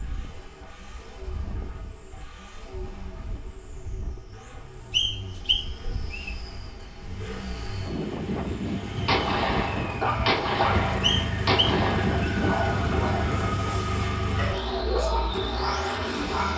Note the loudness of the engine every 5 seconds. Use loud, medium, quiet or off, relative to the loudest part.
quiet, medium, loud, loud.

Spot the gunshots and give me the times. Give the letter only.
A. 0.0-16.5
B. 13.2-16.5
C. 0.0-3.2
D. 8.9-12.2
D.